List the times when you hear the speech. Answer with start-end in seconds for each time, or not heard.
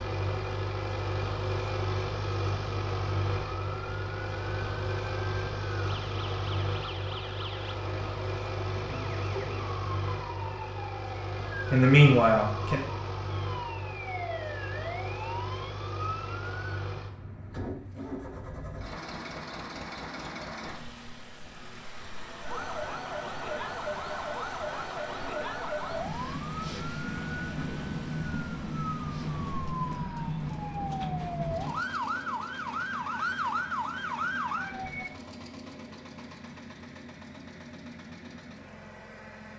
11.7-12.8.